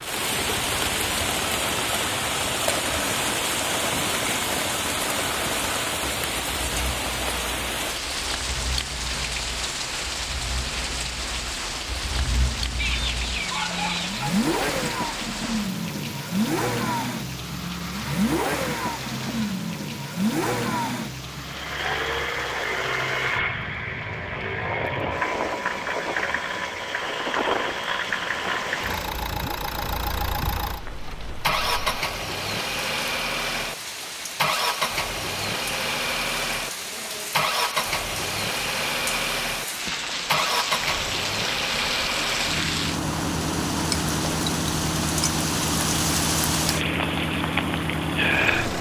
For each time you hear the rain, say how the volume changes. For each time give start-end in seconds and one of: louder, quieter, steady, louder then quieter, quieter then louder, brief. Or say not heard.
0.0-48.7 quieter then louder.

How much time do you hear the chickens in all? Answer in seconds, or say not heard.
2 s.